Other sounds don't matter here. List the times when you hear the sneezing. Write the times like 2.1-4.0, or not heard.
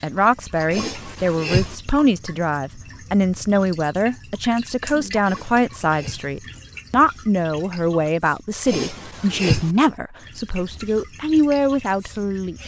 0.7-1.8, 5.2-6.3, 8.7-9.7.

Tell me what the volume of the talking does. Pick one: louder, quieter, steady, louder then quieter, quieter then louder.
steady.